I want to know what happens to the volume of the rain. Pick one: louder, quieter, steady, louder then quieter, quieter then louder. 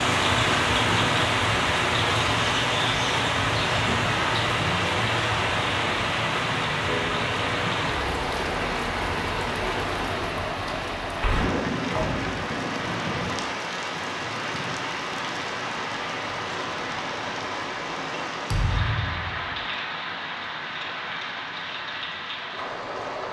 quieter.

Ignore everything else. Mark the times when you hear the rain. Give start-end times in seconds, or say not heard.
0.0-23.2.